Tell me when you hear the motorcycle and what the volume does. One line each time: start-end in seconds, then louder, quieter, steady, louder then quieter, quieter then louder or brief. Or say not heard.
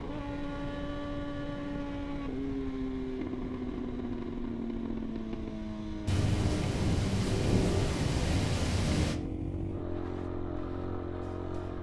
0.0-11.7 steady.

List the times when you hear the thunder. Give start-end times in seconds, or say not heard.
6.0-9.2.